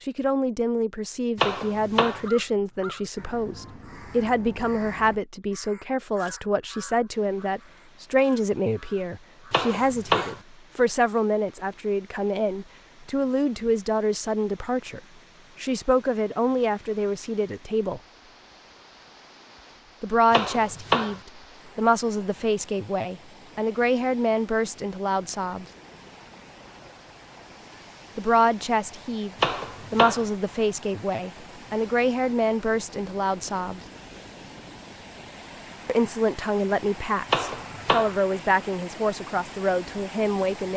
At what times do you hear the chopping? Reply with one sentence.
The chopping can be heard from 1.4 to 2.2 s, from 9.5 to 10.4 s, from 20.3 to 21.2 s, from 29.4 to 30.2 s and from 37.3 to 38.1 s.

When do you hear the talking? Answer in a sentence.
The talking can be heard from 0.0 to 15.0 s, from 15.6 to 18.0 s, from 20.0 to 25.6 s, from 28.1 to 33.8 s and from 35.9 to 40.7 s.